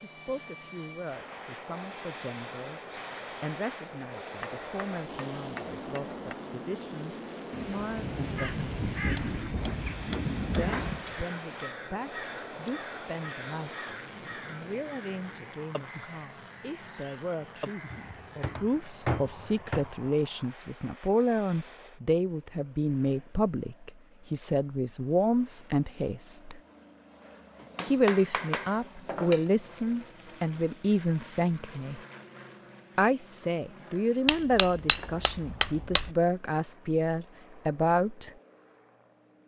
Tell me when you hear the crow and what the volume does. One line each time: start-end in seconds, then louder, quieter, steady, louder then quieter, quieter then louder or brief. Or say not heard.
8.3-18.6 quieter.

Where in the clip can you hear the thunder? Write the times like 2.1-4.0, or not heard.
7.5-11.1.